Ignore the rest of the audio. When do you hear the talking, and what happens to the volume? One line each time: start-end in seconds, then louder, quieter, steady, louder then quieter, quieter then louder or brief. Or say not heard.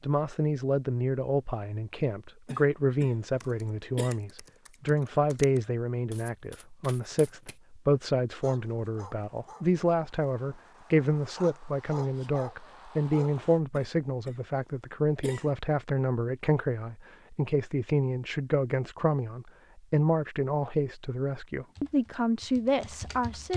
0.0-23.5 steady.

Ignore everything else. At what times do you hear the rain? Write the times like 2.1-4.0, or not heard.
not heard.